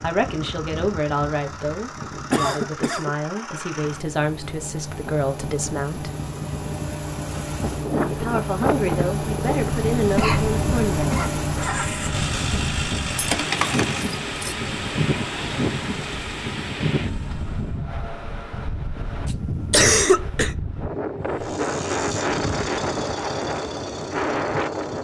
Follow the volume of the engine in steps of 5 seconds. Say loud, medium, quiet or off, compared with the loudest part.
medium, loud, loud, medium, medium.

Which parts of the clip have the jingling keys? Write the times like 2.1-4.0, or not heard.
13.2-14.6.